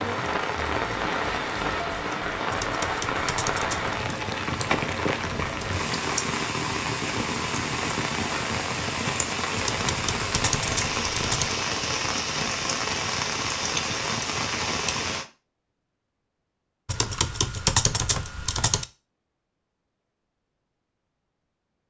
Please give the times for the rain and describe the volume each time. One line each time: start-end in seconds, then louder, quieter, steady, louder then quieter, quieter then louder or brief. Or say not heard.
0.0-15.2 steady.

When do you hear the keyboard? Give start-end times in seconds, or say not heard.
2.5-4.0, 9.6-11.6, 16.9-18.9.